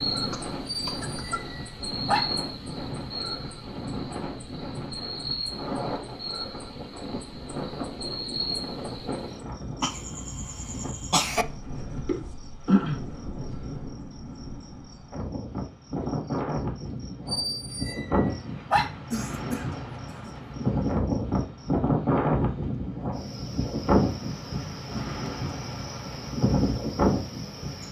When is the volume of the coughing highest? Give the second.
11 s.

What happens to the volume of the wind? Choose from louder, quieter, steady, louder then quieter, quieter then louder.
louder.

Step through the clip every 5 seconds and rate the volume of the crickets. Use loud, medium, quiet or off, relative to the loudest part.
loud, loud, loud, quiet, quiet, medium.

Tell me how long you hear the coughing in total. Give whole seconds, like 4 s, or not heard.
4 s.